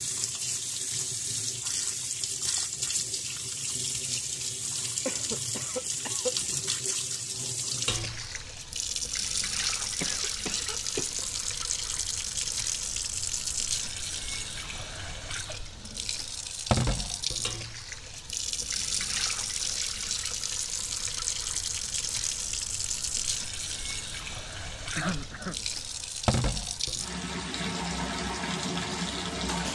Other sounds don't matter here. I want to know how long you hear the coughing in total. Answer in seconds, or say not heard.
3 s.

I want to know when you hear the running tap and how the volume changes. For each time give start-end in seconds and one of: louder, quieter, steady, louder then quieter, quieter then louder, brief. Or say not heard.
0.0-29.6 steady.